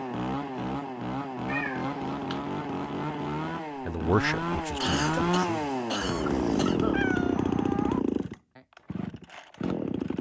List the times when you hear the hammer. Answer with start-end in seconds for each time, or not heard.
not heard.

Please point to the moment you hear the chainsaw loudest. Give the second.
7 s.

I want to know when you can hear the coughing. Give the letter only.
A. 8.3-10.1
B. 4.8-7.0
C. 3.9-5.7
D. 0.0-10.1
B.